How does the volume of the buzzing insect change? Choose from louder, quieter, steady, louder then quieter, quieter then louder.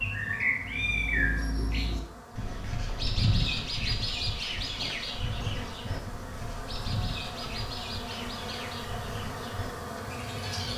louder.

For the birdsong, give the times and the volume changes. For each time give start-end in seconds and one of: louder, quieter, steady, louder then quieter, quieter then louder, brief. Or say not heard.
0.0-10.7 quieter.